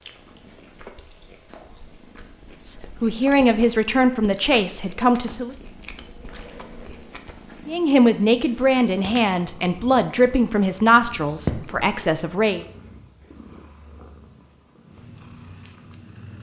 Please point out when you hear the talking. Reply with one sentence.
The talking can be heard from 2.6 to 5.5 s and from 7.7 to 12.6 s.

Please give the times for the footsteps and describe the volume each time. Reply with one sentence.
You can't hear the footsteps here.